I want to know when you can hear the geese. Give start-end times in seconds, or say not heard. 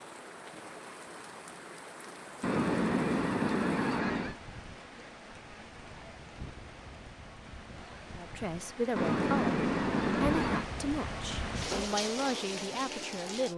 2.4-4.3, 8.9-10.7.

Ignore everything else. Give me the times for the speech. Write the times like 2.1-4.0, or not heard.
8.2-13.5.